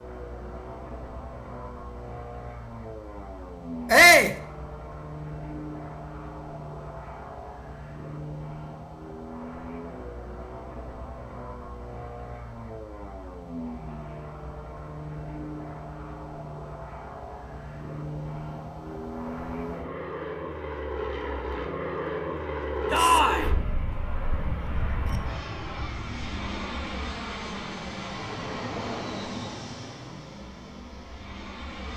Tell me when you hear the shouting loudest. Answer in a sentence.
The loudest moment of the shouting is at 4 seconds.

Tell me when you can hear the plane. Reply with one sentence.
You can hear the plane from 0.0 to 31.9 s.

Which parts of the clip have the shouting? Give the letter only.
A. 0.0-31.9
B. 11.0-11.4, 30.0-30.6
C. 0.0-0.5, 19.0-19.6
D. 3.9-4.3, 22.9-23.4
D.